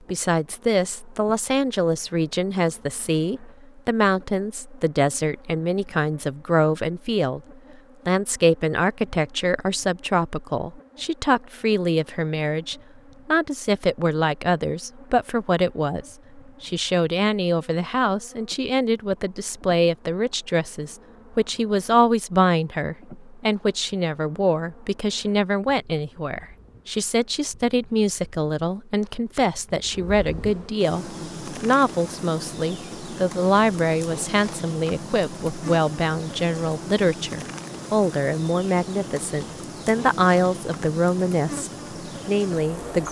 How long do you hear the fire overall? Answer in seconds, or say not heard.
not heard.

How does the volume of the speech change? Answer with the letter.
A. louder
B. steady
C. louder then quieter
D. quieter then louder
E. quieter
B.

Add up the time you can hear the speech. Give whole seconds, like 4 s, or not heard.
42 s.